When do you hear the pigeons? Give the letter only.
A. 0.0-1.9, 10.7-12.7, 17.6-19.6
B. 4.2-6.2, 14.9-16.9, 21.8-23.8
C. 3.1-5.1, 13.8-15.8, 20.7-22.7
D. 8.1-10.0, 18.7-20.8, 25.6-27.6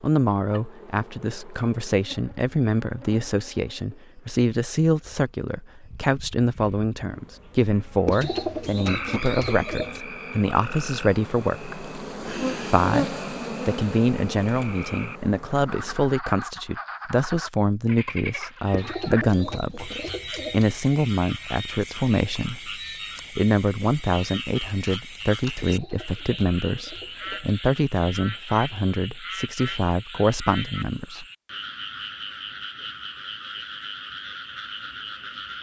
D.